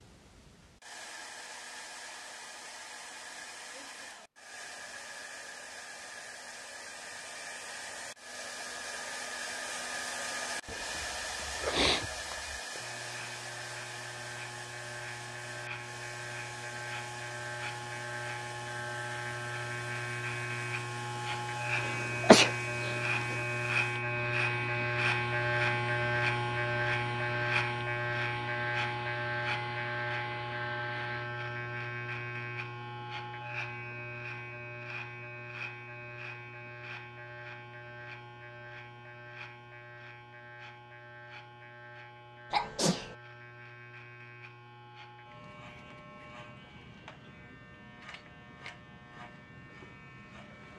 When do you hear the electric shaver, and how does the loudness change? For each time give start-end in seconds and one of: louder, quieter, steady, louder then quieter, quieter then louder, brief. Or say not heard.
12.8-50.7 louder then quieter.